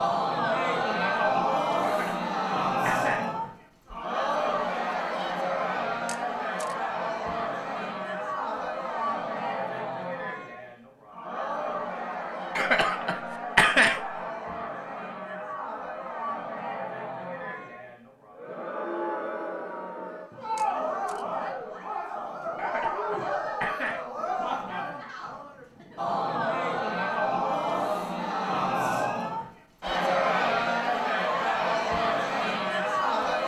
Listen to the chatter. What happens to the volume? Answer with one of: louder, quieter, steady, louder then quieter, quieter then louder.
quieter then louder.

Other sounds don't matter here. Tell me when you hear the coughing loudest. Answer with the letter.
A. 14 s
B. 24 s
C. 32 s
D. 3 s
A.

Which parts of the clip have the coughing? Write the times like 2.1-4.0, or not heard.
1.8-3.3, 12.6-14.2, 22.6-24.2.